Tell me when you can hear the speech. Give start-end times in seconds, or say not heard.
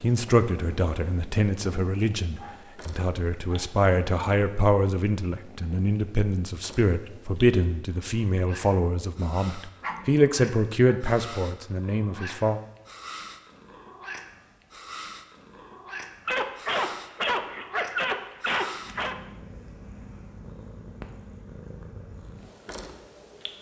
0.0-12.6.